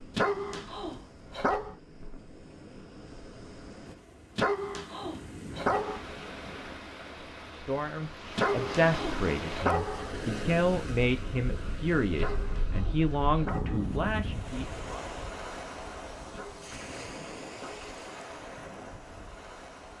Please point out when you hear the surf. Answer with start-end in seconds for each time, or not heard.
0.0-19.9.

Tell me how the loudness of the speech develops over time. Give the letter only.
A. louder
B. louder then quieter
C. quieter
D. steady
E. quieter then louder
D.